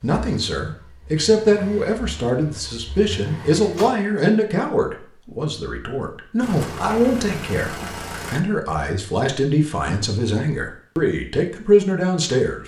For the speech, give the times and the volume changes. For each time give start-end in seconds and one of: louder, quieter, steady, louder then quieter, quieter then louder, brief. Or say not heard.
0.0-12.6 steady.